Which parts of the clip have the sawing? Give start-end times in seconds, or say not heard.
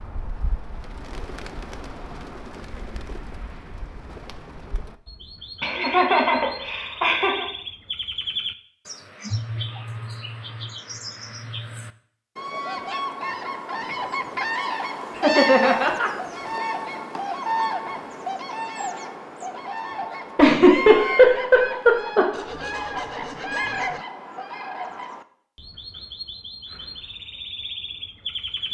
22.3-24.1.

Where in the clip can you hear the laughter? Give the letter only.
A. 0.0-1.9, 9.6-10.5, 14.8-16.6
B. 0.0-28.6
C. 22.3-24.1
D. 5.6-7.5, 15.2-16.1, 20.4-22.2
D.